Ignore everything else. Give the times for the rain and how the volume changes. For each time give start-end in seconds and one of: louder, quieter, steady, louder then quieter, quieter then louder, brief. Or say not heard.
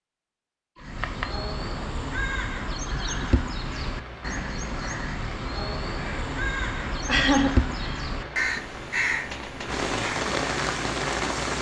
3.6-11.5 louder.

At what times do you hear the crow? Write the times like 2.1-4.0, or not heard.
0.8-10.3.